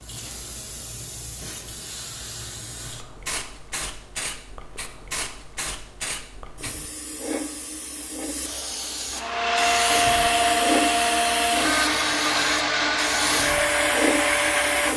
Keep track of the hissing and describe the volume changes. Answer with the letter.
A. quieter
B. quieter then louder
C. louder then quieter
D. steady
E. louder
E.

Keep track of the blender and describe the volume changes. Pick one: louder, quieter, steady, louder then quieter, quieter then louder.
steady.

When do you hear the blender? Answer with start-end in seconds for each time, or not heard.
9.1-14.9.